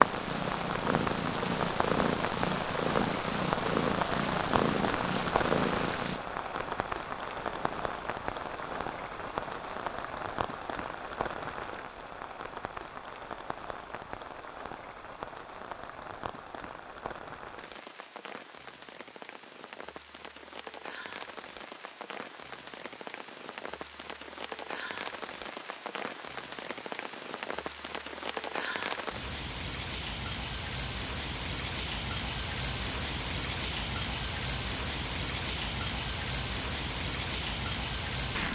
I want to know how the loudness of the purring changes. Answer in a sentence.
The volume of the purring goes down.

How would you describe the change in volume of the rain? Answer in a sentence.
The loudness of the rain goes down, then up.